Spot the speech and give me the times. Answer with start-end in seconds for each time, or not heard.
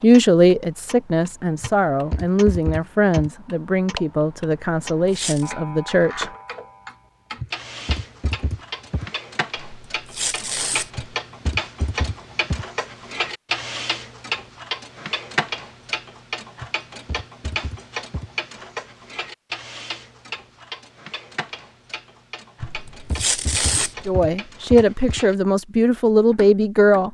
0.0-6.3, 24.1-27.0.